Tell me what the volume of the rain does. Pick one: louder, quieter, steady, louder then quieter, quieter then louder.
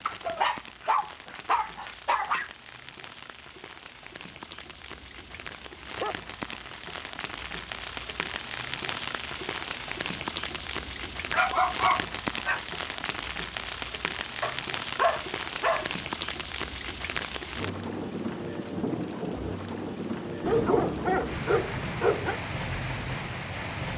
louder.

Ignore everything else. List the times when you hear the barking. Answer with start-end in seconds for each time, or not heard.
0.1-2.5, 5.3-6.2, 11.3-12.6, 14.4-15.9, 20.4-22.4.